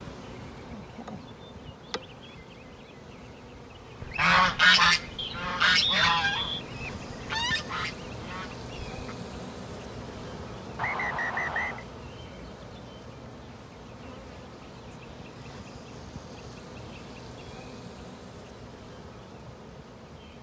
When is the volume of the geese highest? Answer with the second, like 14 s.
5 s.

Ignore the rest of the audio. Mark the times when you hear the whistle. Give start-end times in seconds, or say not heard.
5.2-6.6, 10.8-11.8.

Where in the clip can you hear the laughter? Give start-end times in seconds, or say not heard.
not heard.